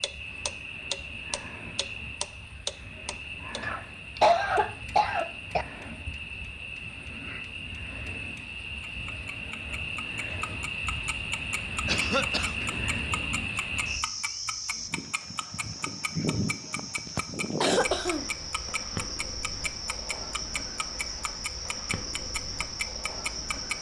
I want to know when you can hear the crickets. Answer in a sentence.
You can hear the crickets from 0.0 to 23.7 s.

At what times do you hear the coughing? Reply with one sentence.
You can hear the coughing from 3.6 to 5.7 s, from 11.8 to 12.6 s and from 16.8 to 18.7 s.